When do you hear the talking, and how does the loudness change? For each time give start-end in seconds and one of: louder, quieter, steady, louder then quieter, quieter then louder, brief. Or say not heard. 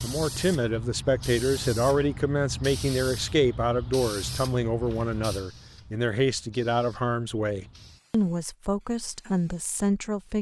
0.0-10.3 steady.